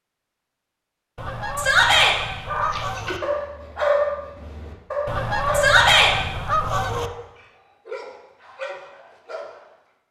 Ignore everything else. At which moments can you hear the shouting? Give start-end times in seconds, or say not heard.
1.6-2.1, 5.5-6.2.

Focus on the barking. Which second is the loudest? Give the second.
4 s.